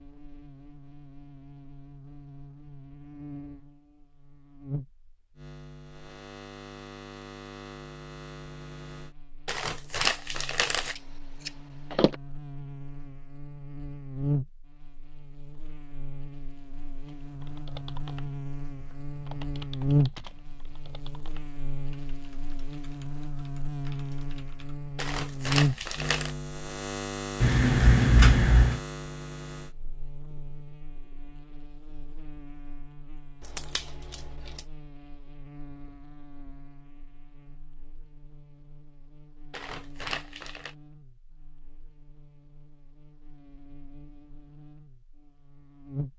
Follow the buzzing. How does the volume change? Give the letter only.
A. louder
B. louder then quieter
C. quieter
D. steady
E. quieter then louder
B.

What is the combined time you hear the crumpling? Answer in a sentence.
The crumpling can be heard for 4 seconds in total.